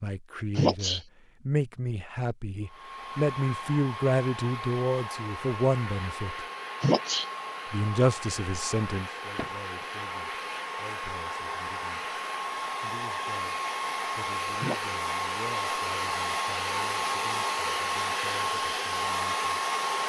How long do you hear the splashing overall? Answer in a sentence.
You can't hear the splashing here.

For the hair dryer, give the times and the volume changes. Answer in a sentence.
You can hear the hair dryer from 2.6 to 20.0 s, getting louder.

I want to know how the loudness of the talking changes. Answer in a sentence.
The loudness of the talking goes down.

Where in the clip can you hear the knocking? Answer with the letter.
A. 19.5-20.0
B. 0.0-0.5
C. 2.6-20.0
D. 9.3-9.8
D.